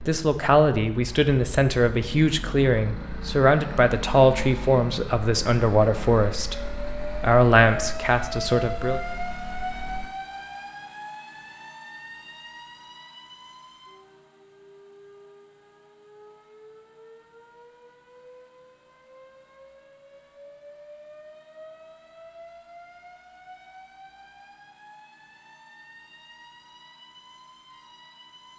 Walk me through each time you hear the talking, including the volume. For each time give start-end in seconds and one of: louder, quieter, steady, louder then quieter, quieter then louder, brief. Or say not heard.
0.0-9.0 steady.